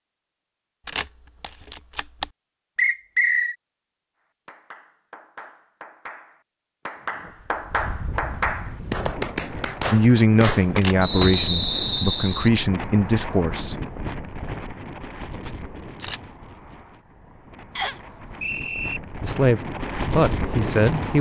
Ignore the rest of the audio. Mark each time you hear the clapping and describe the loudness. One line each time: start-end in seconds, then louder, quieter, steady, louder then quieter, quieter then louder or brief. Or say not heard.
4.5-11.3 louder.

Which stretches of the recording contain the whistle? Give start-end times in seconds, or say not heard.
2.8-3.5, 11.0-12.5, 17.8-19.0.